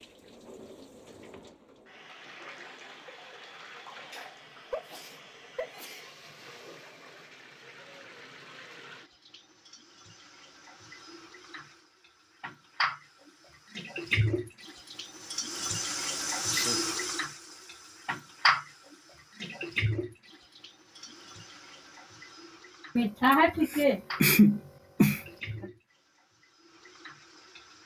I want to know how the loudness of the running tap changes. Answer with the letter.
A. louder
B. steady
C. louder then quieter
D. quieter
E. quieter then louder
C.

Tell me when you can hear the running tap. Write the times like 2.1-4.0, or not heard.
0.0-27.8.